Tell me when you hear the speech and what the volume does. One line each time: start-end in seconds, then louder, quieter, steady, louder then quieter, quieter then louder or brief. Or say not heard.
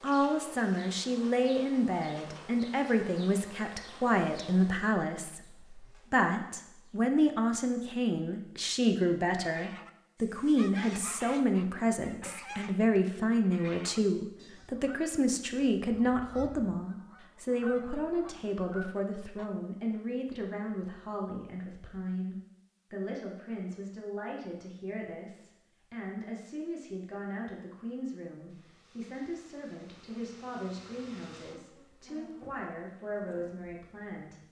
0.0-34.4 quieter.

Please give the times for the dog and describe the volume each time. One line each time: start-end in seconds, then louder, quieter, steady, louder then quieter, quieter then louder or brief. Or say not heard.
not heard.